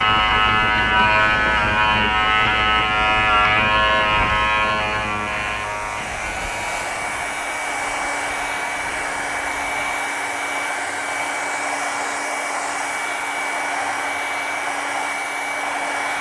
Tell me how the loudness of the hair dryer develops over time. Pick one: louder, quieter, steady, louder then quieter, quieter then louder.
louder.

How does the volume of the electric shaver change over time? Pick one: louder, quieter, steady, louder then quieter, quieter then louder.
quieter.